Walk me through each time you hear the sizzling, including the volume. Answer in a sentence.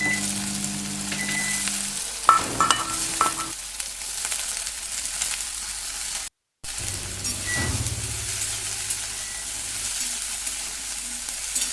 You can hear the sizzling from 0.0 to 11.6 s, at a steady volume.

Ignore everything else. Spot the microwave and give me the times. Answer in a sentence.
You can hear the microwave from 0.0 to 3.0 s and from 6.8 to 9.9 s.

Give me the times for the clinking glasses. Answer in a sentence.
You can hear the clinking glasses from 2.2 to 3.5 s.